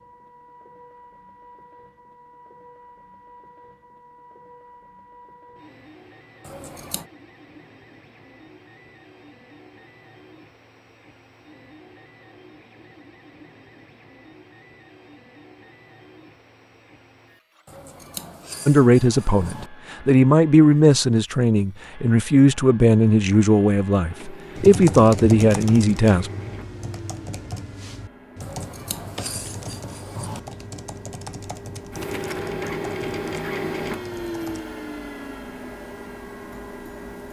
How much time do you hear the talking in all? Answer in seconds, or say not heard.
8 s.